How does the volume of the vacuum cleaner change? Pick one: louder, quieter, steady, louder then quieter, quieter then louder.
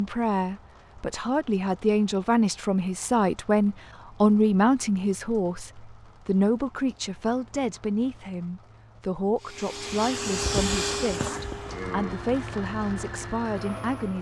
quieter.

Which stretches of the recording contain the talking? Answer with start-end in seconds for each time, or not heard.
0.0-14.1.